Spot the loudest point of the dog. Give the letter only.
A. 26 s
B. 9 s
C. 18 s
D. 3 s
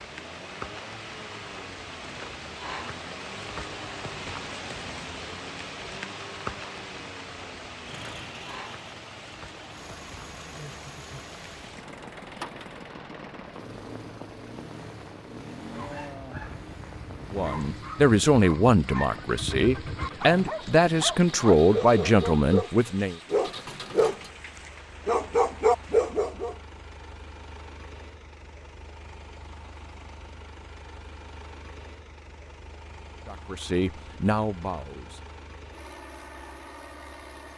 A.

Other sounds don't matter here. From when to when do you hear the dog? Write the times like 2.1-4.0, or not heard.
15.7-22.7, 23.3-26.6.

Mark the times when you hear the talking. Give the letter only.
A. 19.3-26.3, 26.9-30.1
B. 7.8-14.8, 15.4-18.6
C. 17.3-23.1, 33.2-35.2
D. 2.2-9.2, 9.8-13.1
C.